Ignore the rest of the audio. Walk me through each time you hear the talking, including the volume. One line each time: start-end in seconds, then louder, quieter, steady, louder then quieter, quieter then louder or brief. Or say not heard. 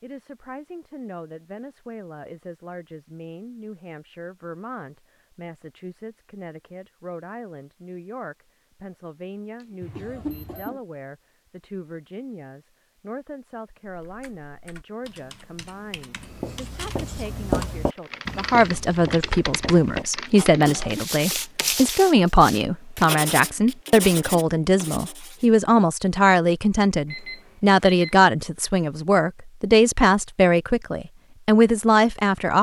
0.0-32.5 louder.